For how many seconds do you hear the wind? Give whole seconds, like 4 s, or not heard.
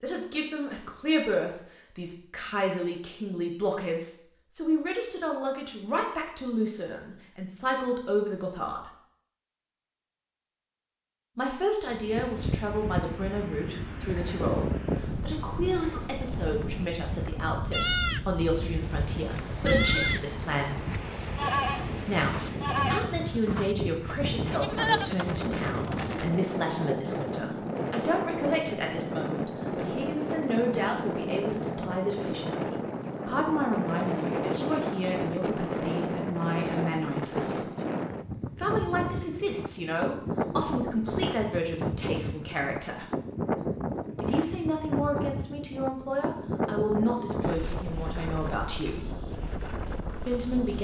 39 s.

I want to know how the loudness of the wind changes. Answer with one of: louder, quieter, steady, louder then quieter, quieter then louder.
steady.